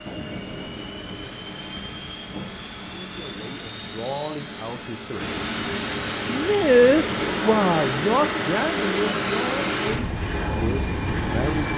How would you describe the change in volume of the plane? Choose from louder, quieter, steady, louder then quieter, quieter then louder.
louder.